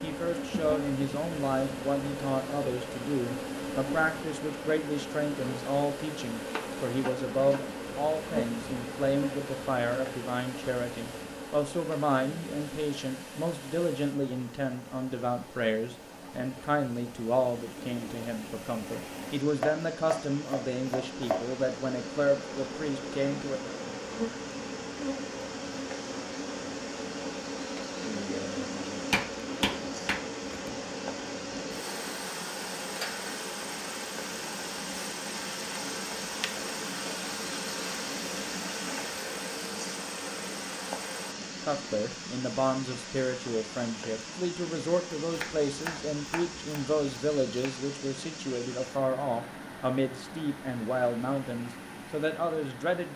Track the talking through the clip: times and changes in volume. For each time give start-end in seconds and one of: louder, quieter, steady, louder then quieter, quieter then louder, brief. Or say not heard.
0.0-23.8 steady
41.6-53.1 steady.